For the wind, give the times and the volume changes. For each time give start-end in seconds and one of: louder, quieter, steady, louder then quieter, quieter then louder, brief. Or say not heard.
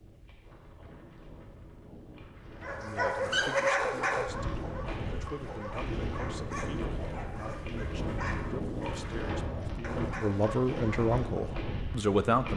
0.0-12.5 louder.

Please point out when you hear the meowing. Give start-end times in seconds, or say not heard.
not heard.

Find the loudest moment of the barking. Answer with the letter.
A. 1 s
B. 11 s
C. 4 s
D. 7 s
C.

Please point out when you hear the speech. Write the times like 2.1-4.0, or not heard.
2.8-12.5.